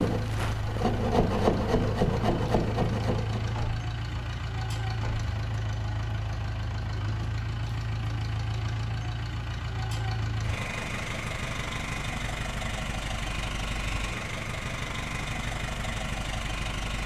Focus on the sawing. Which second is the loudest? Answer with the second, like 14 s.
1 s.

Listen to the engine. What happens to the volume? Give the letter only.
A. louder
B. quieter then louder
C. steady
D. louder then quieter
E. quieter
C.